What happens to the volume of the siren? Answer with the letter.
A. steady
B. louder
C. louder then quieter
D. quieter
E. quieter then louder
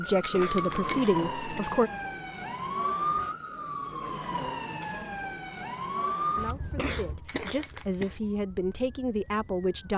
D.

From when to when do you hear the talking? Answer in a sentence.
The talking can be heard from 0.0 to 1.9 s and from 6.3 to 9.9 s.